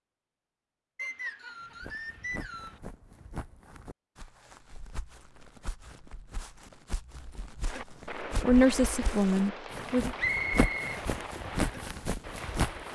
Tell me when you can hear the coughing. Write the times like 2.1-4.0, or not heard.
not heard.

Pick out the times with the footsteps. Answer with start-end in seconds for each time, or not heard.
1.6-12.8.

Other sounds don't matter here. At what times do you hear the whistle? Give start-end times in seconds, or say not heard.
0.9-2.8, 10.2-11.0.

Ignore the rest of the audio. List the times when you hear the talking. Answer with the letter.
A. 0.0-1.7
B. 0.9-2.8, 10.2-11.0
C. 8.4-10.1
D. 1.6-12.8
C.